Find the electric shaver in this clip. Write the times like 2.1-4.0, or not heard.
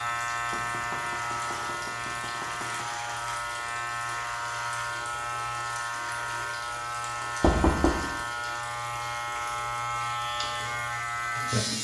0.0-11.7.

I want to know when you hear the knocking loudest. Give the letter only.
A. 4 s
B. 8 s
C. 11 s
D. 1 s
B.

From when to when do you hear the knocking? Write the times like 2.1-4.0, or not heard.
0.5-2.9, 7.4-8.1.